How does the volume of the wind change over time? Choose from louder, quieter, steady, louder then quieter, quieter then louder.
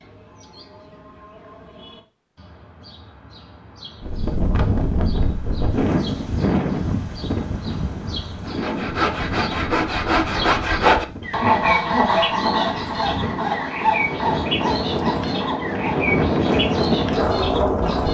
quieter then louder.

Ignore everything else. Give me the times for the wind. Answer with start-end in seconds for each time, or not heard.
4.0-18.0.